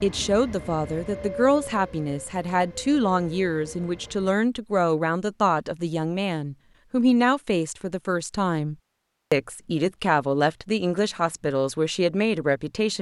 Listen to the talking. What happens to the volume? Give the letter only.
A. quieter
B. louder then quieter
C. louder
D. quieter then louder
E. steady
E.